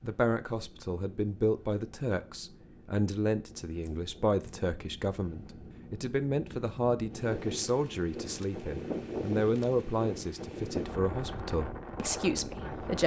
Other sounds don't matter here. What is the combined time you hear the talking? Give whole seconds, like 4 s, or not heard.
13 s.